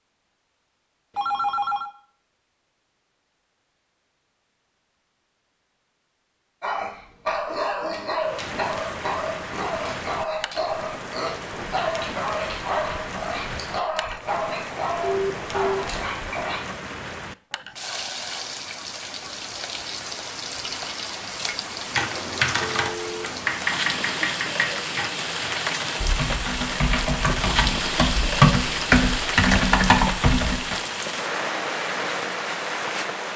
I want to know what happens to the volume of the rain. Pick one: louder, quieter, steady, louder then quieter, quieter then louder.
louder.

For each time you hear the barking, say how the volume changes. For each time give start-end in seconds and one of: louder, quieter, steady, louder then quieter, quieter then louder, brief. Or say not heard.
6.6-16.6 steady.